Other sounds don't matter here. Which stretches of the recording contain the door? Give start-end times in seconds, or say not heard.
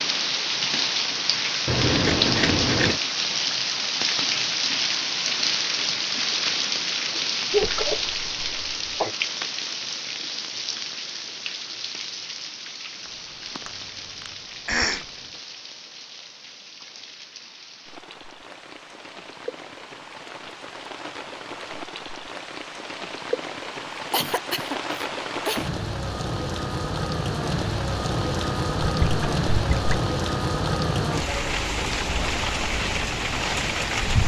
not heard.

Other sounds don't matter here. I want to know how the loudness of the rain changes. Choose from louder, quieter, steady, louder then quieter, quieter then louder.
quieter then louder.